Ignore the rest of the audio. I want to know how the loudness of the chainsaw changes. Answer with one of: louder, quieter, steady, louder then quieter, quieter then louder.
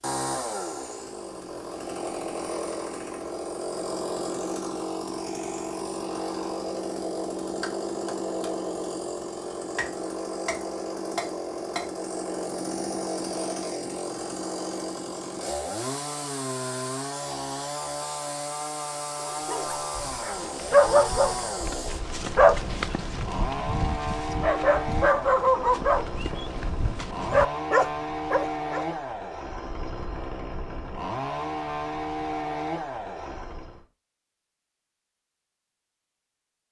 steady.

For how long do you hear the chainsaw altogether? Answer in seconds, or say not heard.
34 s.